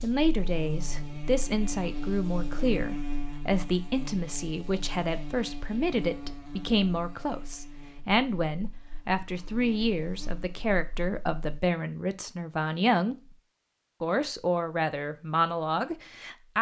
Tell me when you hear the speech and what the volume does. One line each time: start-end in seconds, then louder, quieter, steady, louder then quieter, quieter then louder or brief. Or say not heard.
0.0-13.3 steady
14.0-16.5 brief.